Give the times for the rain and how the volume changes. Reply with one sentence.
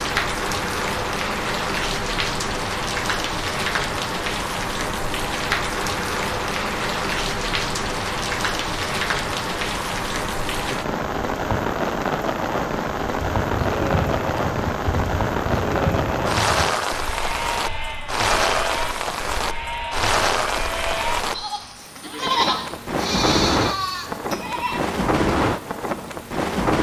You can hear the rain from 0.0 to 26.7 s, at a steady volume.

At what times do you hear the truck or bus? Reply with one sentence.
You can't hear the truck or bus here.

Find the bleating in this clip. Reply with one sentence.
You can hear the bleating from 13.4 to 24.8 s.